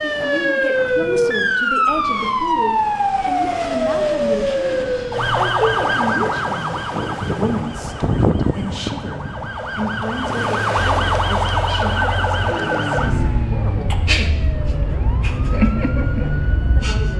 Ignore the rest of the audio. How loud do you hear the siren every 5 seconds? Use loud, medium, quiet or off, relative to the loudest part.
loud, medium, loud, medium.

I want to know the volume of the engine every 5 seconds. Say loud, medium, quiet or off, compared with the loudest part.
off, off, loud, loud.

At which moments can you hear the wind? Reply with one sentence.
The wind can be heard from 0.0 to 10.6 s.